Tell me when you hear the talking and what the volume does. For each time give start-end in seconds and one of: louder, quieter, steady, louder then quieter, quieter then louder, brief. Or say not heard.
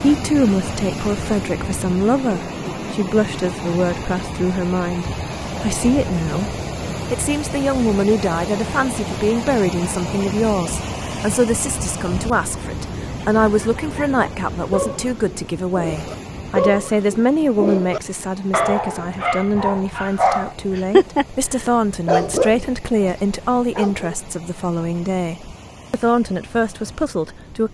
0.0-27.6 steady.